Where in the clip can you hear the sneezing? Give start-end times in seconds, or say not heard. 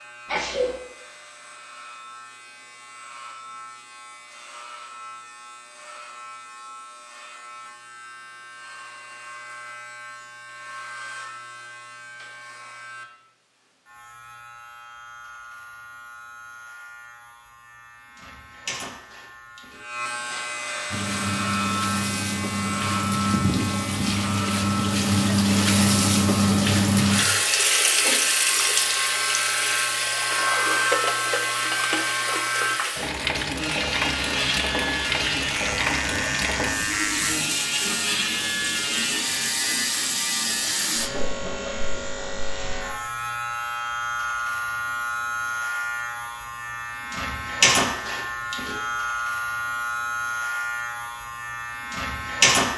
0.2-0.8.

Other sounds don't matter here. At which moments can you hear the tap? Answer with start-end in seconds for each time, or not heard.
20.9-41.1.